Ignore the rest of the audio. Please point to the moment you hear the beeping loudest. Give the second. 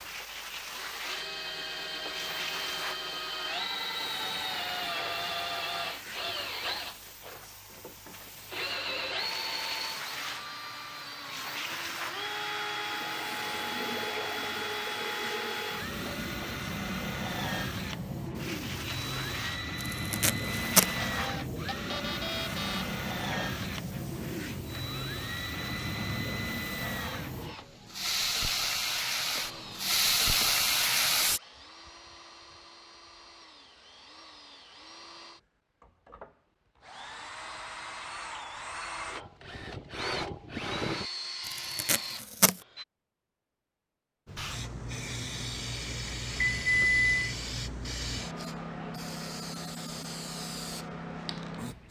47 s.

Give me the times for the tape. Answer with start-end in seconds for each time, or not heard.
19.8-20.9, 41.5-42.5.